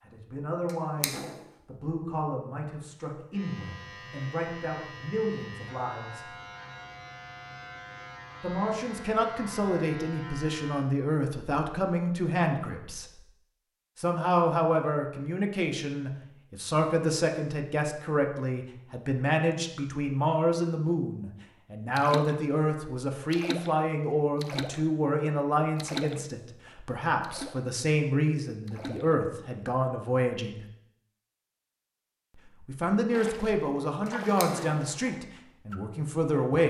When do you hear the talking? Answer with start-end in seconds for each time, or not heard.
0.0-6.3, 8.4-13.2, 13.9-30.6, 32.4-36.6.